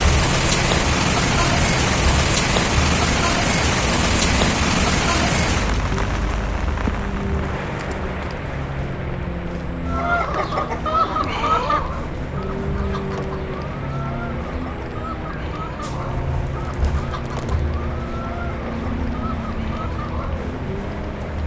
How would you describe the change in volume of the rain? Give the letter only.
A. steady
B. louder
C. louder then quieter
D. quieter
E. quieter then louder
D.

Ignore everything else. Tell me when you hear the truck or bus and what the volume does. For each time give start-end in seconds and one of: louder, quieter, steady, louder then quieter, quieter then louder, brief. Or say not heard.
0.0-21.4 steady.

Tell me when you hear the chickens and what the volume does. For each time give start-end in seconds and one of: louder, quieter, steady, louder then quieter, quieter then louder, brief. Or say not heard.
9.8-20.4 quieter.